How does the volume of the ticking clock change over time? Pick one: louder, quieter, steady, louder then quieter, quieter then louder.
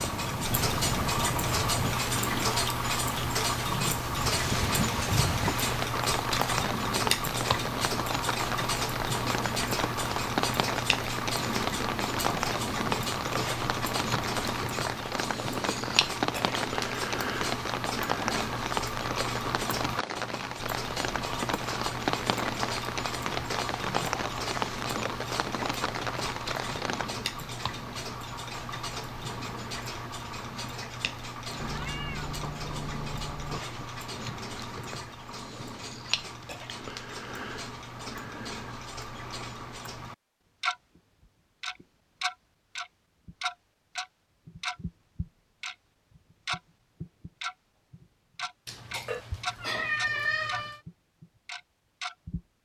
quieter.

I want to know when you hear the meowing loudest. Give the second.
50 s.